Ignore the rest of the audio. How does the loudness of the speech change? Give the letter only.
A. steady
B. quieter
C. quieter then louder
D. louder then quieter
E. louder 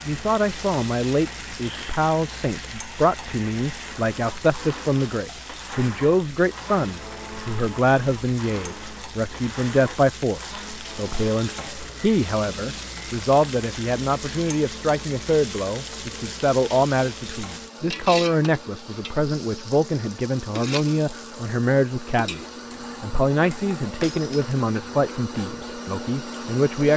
A.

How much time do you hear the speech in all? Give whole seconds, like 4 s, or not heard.
27 s.